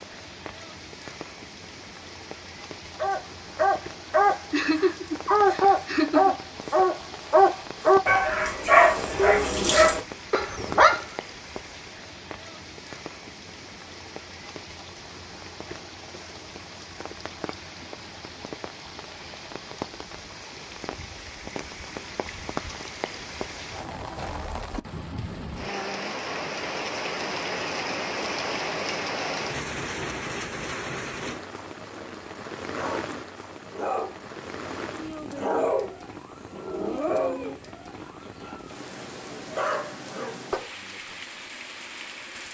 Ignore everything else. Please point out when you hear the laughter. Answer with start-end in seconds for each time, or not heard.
4.5-6.3.